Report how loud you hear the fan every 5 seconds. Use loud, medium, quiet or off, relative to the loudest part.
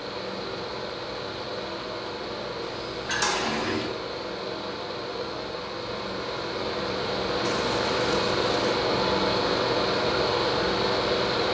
medium, loud, loud.